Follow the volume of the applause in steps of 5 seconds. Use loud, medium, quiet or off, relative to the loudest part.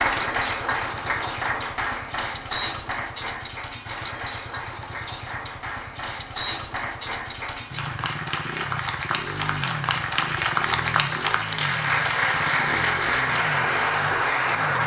medium, medium, loud.